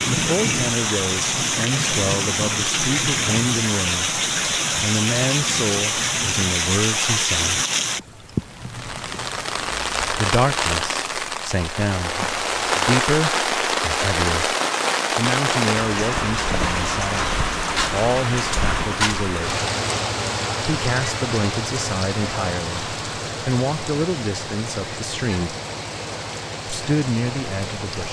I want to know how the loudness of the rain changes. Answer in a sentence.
The volume of the rain goes down.